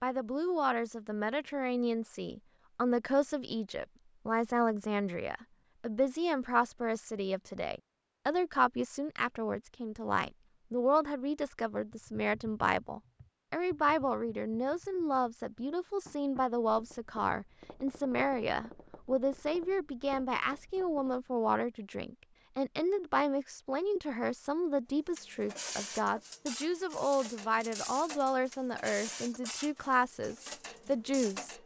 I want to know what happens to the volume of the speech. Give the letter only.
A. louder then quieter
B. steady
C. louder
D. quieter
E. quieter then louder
B.